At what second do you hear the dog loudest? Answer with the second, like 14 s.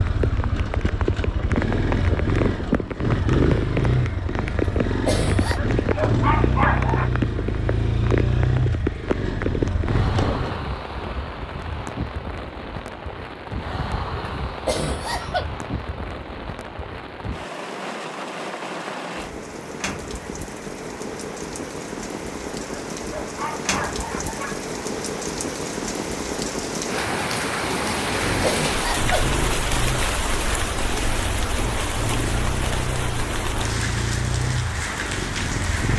7 s.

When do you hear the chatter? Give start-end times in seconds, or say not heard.
not heard.